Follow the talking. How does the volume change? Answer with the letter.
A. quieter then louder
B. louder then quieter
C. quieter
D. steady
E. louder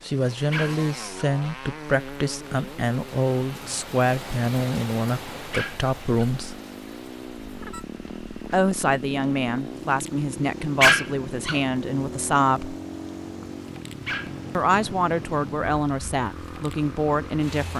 D.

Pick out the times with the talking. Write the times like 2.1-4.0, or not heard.
0.0-6.5, 8.5-12.8, 14.5-17.7.